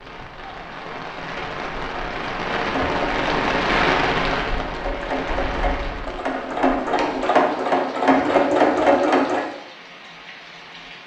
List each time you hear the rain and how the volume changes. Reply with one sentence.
The rain can be heard from 0.0 to 11.0 s, getting louder then quieter.